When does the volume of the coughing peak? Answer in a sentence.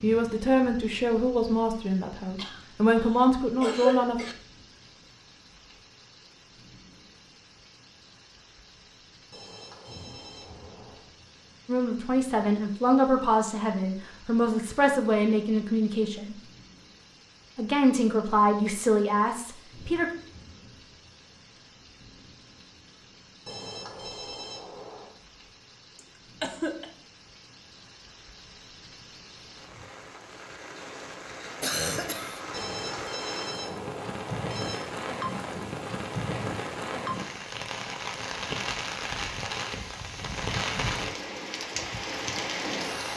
The loudest moment of the coughing is at 4 seconds.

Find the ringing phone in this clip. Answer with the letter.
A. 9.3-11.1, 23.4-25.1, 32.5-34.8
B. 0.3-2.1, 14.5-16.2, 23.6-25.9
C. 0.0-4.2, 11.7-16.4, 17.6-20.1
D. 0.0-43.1
A.